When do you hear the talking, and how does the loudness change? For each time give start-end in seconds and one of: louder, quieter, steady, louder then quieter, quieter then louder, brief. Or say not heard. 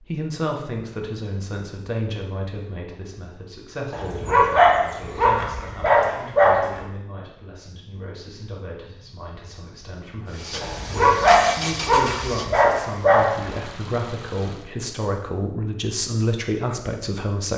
0.0-17.5 quieter then louder.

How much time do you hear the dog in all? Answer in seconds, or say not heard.
6 s.